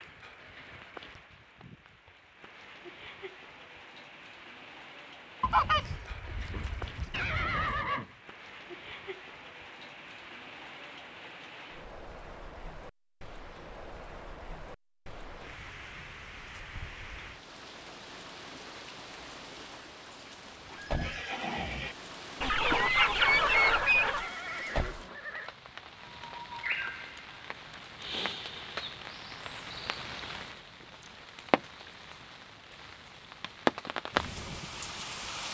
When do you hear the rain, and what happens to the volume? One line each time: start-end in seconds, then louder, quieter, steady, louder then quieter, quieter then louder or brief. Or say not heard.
0.0-35.4 louder.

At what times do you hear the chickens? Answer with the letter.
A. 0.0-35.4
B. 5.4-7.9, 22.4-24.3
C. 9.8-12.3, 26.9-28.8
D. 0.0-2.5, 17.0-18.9
B.